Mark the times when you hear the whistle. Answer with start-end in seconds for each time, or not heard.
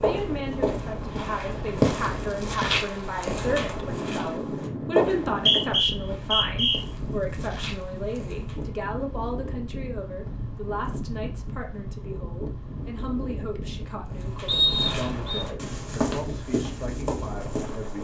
5.3-6.8, 14.4-15.4.